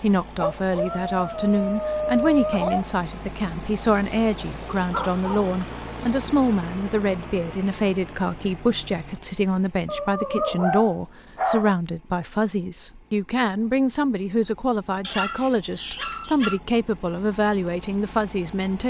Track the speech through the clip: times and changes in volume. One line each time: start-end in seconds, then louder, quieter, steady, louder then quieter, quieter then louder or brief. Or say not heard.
0.0-18.8 steady.